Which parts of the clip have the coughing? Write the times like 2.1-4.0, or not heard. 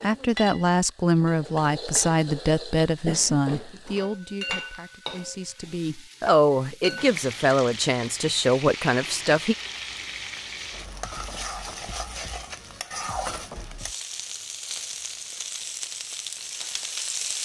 3.0-3.8.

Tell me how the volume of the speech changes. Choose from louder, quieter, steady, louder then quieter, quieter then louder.
quieter then louder.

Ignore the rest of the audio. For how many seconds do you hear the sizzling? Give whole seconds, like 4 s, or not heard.
17 s.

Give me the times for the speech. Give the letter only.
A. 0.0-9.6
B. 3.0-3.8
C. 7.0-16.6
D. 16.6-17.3
A.